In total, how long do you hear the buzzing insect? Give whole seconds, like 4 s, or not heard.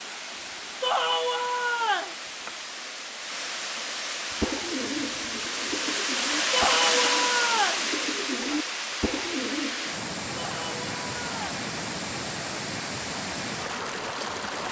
not heard.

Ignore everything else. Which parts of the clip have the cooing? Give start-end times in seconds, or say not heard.
4.4-9.9.